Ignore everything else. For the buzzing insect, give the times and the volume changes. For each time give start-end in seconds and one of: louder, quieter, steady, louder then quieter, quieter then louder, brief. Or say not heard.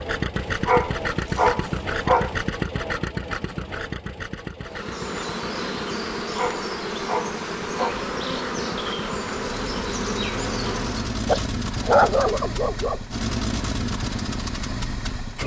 4.6-11.2 steady.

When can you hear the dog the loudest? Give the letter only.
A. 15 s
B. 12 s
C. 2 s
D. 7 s
B.